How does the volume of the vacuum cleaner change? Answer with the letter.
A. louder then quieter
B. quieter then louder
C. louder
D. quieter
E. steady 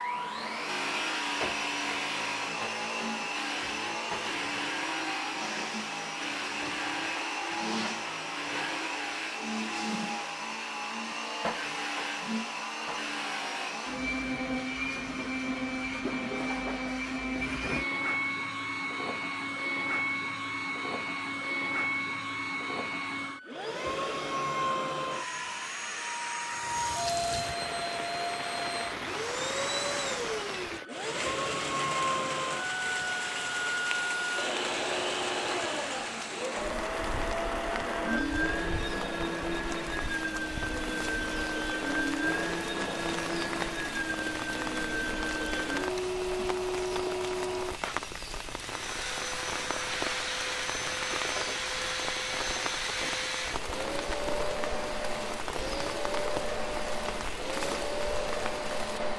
E.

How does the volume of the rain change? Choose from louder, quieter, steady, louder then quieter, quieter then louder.
steady.